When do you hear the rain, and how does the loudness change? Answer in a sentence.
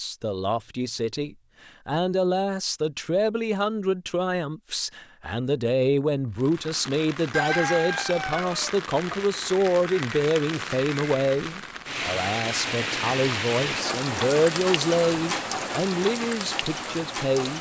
You can hear the rain from 6.3 to 17.5 s, getting louder.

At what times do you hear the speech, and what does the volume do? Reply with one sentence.
The speech can be heard from 0.0 to 17.5 s, at a steady volume.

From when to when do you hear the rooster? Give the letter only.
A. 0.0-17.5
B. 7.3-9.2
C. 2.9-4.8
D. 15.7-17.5
B.